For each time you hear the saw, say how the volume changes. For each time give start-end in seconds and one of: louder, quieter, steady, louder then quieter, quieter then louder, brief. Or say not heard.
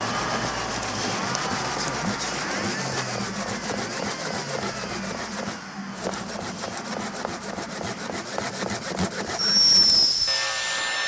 0.0-11.0 steady.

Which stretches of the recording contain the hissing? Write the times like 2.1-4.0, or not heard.
9.2-10.9.